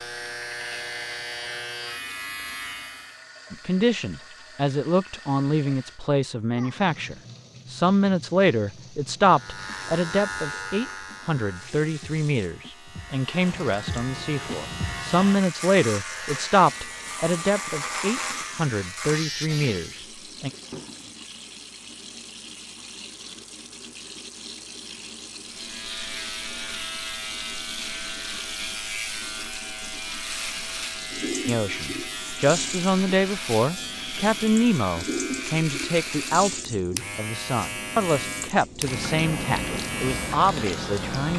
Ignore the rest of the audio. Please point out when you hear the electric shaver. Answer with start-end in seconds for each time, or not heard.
0.0-3.2, 9.3-20.1, 25.4-41.3.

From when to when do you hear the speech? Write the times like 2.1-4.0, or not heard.
3.5-20.5, 31.4-41.3.